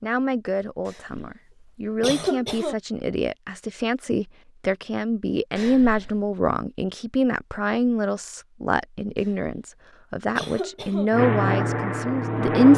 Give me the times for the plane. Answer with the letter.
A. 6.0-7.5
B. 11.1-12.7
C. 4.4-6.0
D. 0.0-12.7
B.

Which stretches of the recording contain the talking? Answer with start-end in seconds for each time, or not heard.
0.0-12.7.